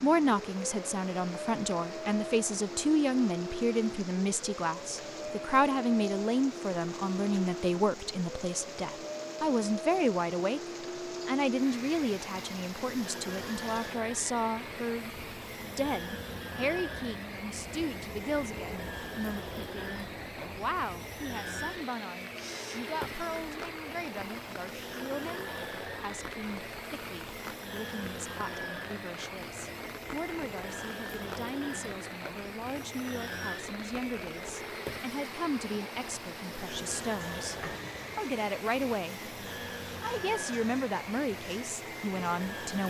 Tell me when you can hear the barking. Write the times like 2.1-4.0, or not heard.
not heard.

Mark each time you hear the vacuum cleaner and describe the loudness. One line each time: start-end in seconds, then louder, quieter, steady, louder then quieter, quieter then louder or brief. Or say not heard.
0.0-42.8 steady.